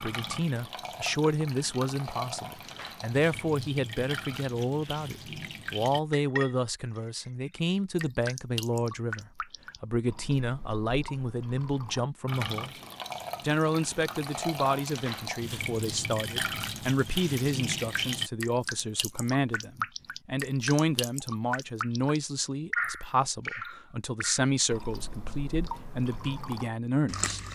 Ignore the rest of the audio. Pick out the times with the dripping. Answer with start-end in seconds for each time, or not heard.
0.0-27.4.